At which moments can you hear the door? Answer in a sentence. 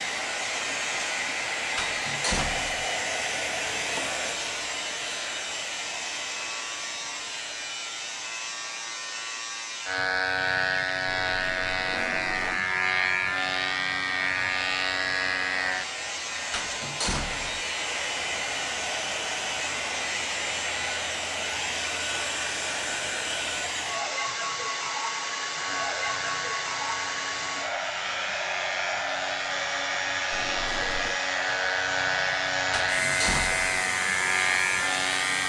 The door can be heard from 1.8 to 2.9 s, from 16.5 to 17.6 s and from 32.7 to 33.8 s.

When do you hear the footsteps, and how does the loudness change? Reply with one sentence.
You can't hear the footsteps here.